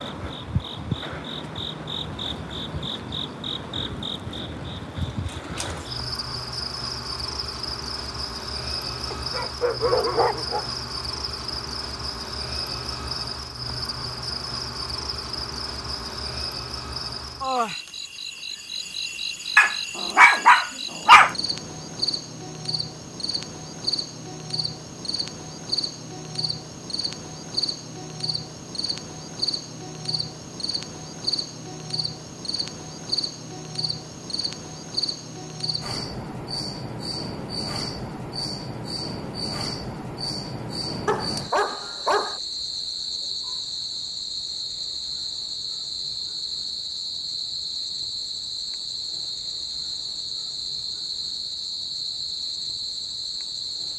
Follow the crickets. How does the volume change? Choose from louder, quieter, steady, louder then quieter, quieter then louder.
steady.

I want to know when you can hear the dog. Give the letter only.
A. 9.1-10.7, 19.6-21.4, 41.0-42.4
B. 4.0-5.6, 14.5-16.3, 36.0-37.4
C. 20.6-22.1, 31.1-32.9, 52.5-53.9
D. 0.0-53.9
A.